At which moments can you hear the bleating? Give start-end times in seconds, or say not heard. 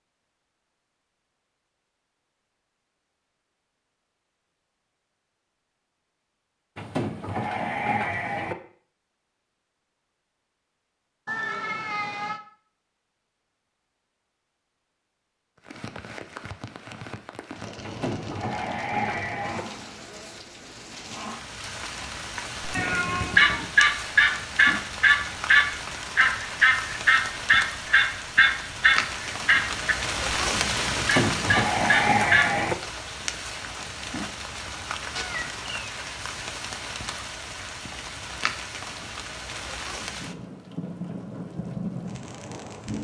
6.8-8.6, 17.8-19.6, 30.9-32.8.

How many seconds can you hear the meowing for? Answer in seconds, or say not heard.
3 s.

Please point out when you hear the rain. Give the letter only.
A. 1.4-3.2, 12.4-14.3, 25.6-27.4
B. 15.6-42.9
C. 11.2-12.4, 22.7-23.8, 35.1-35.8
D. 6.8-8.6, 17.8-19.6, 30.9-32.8
B.